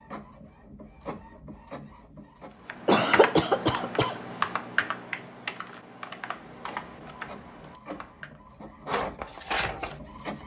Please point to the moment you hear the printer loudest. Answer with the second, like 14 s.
9 s.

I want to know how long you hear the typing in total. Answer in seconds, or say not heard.
6 s.